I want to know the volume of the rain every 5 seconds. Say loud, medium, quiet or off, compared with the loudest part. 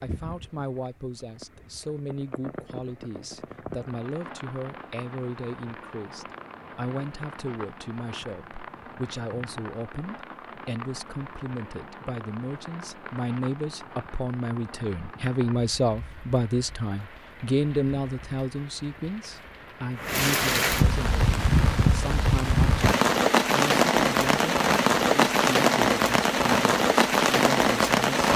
quiet, quiet, quiet, quiet, loud, loud.